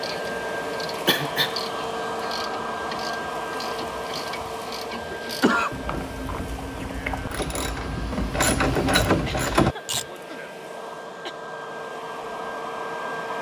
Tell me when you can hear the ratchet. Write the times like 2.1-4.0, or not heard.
0.0-10.1.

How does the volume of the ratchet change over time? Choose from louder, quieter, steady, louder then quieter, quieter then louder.
louder.